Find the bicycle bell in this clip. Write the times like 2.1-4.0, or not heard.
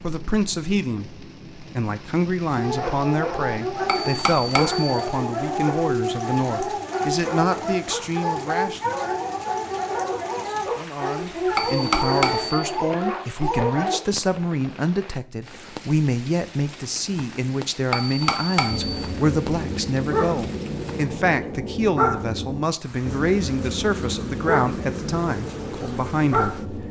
3.9-4.9, 11.6-12.8, 17.9-19.1.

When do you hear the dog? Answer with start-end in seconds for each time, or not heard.
2.5-14.0, 18.6-26.8.